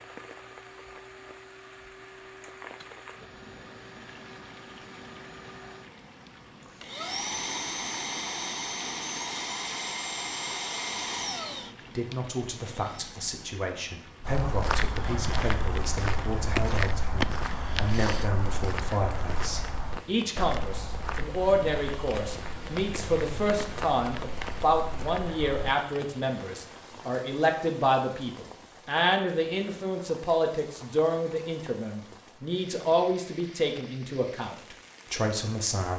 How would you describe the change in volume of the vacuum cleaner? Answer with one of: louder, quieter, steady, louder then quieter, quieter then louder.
louder.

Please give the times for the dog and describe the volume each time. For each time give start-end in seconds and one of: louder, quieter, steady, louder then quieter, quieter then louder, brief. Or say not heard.
not heard.